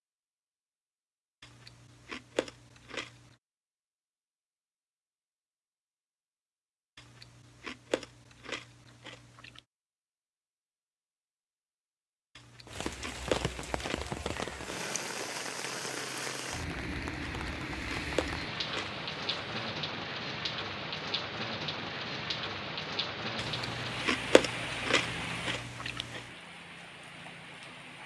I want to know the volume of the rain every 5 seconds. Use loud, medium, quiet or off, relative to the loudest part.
off, off, loud, loud, loud, medium.